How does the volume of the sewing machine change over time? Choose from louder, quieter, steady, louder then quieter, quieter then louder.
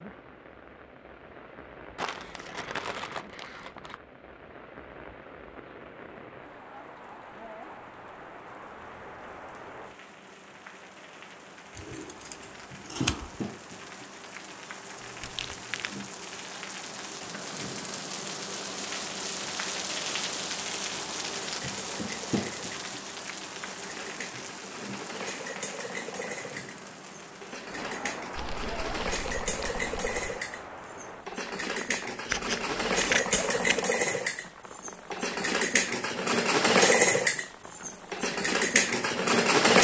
louder.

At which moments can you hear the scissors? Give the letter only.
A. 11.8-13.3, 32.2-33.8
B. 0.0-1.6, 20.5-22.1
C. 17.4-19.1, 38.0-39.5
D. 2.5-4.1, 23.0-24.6
A.